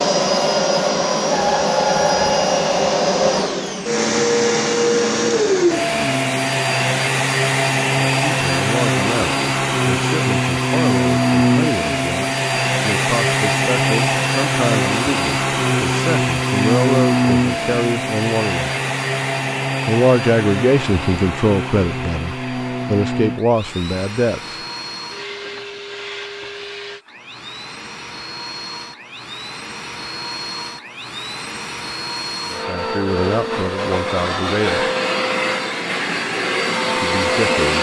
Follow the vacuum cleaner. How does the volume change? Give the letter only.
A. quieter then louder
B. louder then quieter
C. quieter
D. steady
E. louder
A.